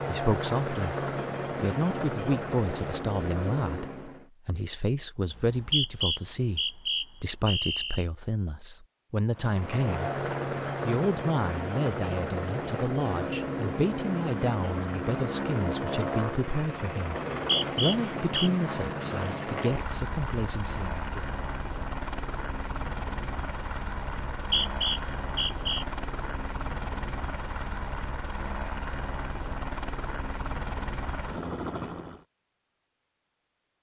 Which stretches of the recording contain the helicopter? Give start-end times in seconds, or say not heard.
0.0-4.3, 9.3-32.2.